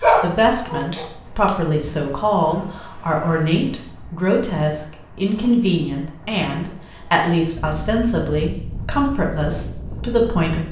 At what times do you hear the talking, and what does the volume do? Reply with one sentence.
The talking can be heard from 0.0 to 10.6 s, at a steady volume.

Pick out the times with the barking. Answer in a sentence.
You can hear the barking from 0.0 to 1.6 s.